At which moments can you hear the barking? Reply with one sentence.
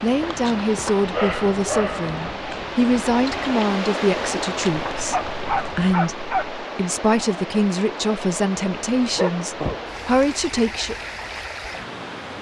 The barking can be heard from 1.1 to 2.6 s, from 4.6 to 6.5 s and from 8.9 to 10.4 s.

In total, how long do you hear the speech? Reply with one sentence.
The speech can be heard for 11 seconds in total.